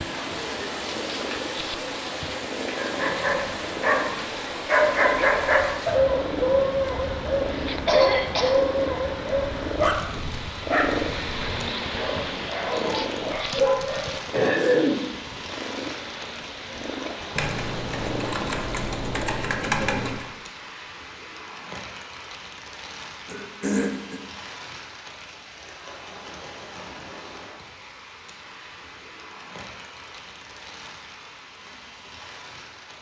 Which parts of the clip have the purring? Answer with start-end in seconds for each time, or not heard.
0.0-19.5.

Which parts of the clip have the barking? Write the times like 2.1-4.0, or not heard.
2.7-14.2.